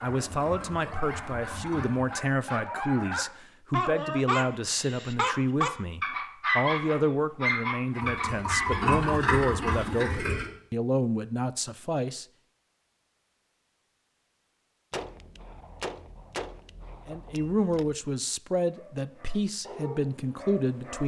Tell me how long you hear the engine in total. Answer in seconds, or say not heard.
5 s.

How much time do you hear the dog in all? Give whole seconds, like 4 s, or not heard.
11 s.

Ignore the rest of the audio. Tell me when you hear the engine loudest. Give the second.
9 s.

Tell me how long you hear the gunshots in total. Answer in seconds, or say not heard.
3 s.